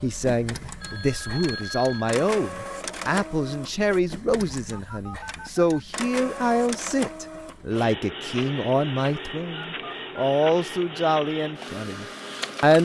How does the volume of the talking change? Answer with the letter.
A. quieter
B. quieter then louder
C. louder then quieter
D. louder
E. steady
E.